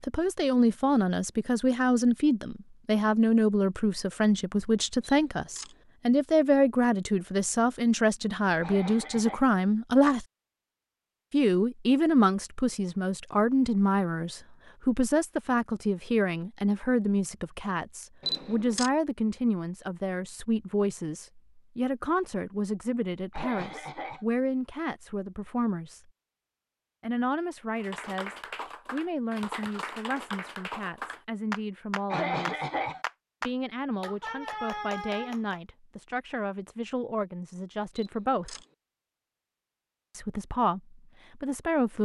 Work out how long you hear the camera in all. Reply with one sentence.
You can hear the camera for 2 seconds altogether.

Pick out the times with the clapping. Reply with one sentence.
You can hear the clapping from 27.8 to 35.6 s.